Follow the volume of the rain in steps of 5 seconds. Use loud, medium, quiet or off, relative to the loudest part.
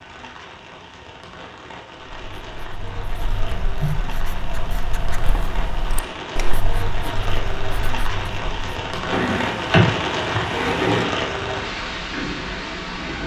quiet, loud, loud.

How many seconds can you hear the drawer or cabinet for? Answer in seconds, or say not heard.
2 s.